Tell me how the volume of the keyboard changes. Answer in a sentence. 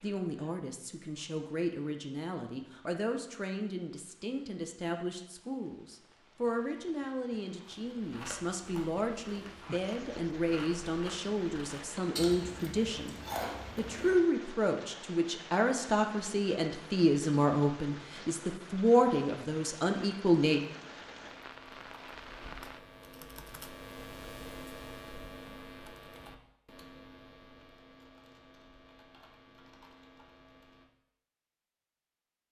The loudness of the keyboard goes up, then down.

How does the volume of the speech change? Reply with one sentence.
The loudness of the speech goes up.